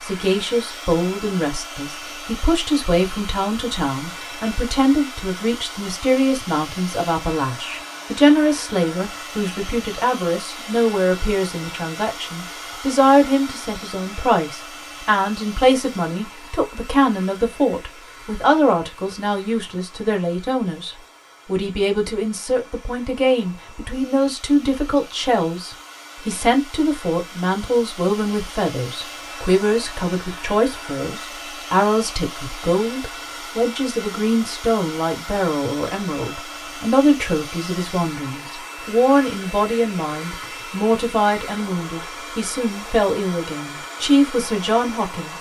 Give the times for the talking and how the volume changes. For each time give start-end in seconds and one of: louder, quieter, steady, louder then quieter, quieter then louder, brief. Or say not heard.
0.0-45.3 steady.